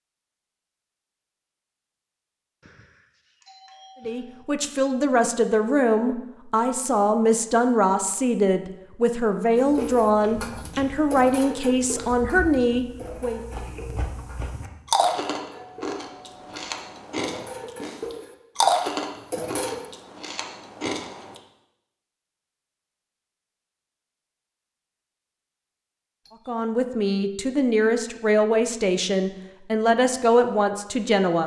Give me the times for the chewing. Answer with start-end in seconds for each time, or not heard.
9.7-21.4.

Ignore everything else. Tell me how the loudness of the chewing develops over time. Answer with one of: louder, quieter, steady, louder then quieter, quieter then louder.
louder then quieter.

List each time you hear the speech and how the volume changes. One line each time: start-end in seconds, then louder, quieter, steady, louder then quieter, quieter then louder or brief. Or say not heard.
4.0-13.4 steady
26.4-31.4 steady.